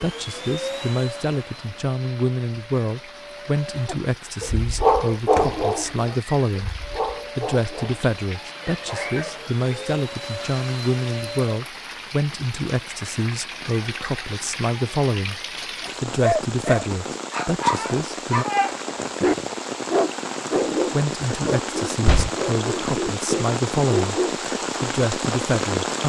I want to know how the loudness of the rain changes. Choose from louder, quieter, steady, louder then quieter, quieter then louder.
louder.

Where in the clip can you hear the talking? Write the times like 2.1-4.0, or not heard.
0.0-6.8, 7.3-15.4, 16.0-18.4, 20.9-24.2, 24.8-26.0.